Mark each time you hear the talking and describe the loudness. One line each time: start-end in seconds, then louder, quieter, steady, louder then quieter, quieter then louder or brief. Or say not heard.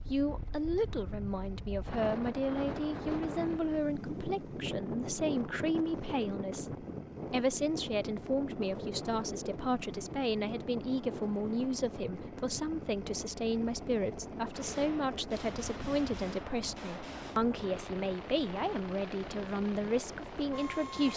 0.1-21.1 steady.